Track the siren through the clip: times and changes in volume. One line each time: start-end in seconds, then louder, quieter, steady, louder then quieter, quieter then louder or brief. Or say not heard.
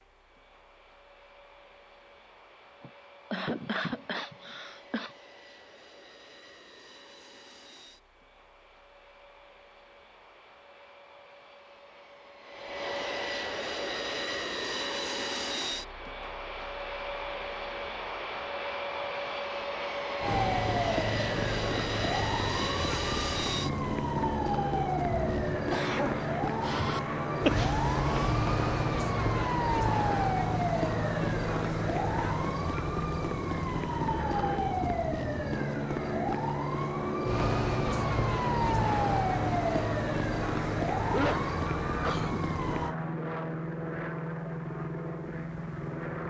20.2-43.0 steady.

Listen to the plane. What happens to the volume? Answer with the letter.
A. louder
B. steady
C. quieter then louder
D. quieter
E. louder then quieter
A.